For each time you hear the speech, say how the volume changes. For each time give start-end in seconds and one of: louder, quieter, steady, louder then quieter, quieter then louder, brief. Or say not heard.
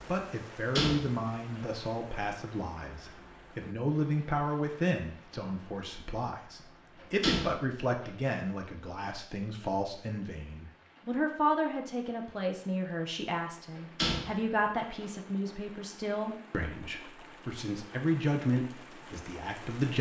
0.1-19.9 steady.